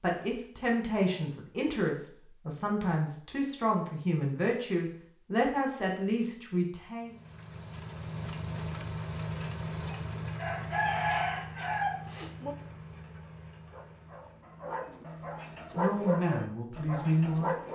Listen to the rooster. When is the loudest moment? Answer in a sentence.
The volume of the rooster peaks at 11 seconds.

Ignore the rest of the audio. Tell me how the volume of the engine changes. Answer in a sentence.
The loudness of the engine goes down.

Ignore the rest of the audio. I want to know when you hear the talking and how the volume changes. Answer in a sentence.
You can hear the talking from 0.0 to 7.2 s, at a steady volume; and briefly from 15.8 to 17.5 s.